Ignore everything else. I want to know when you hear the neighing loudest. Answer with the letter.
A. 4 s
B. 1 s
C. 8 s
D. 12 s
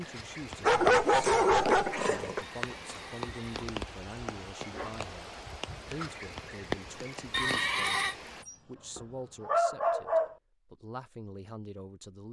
C.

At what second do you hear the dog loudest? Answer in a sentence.
The loudest moment of the dog is at 1 second.